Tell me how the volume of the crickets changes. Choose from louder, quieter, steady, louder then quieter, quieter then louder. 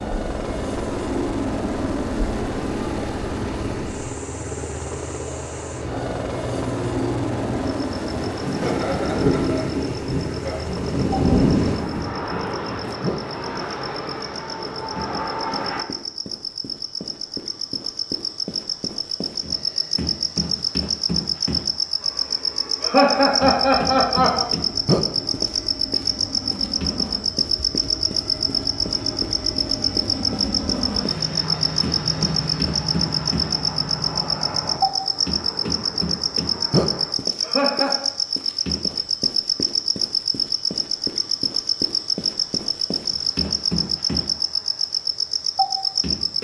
louder.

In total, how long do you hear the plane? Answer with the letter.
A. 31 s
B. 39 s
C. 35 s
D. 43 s
A.